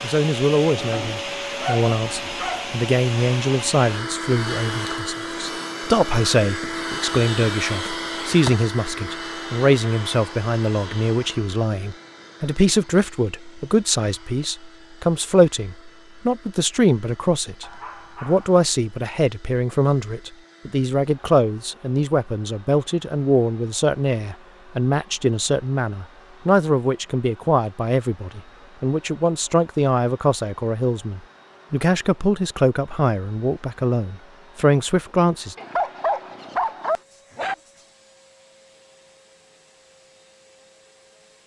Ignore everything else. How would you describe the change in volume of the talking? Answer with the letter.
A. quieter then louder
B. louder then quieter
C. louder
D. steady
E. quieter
D.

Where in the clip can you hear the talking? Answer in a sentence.
The talking can be heard from 0.0 to 35.5 s.